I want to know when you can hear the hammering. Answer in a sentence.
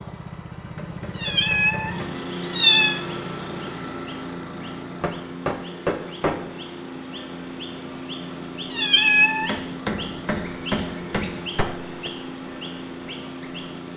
The hammering can be heard from 0.7 to 2.2 s, from 5.0 to 6.5 s and from 9.4 to 12.1 s.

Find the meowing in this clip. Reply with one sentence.
The meowing can be heard from 1.2 to 3.0 s and from 8.7 to 9.6 s.